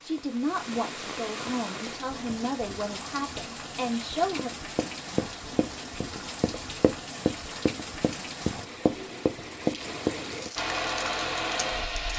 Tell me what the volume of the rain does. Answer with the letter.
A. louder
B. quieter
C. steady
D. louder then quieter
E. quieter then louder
C.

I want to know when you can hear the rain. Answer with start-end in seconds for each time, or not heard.
0.0-12.1.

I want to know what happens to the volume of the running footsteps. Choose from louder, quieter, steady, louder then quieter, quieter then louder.
louder.